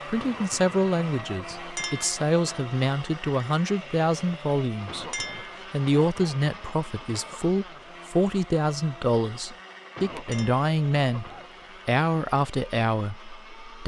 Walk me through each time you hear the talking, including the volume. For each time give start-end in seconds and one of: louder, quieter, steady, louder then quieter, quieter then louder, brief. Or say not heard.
0.1-13.8 steady.